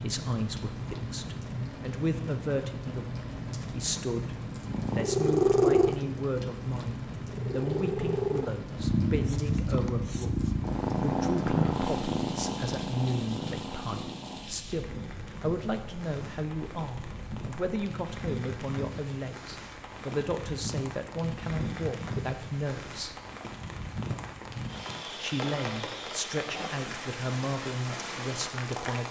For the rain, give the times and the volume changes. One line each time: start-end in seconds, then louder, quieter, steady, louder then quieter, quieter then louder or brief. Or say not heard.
0.0-29.0 quieter then louder.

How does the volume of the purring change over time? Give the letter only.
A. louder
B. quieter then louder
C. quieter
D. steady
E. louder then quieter
C.